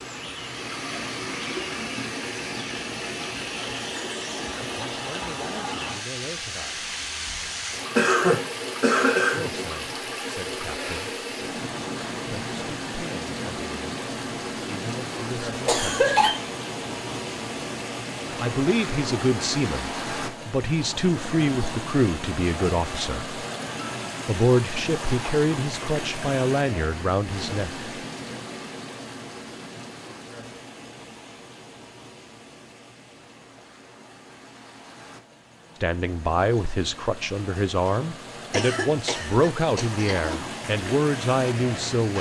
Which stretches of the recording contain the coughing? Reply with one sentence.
You can hear the coughing from 8.0 to 9.7 s, from 15.7 to 16.4 s and from 38.5 to 40.5 s.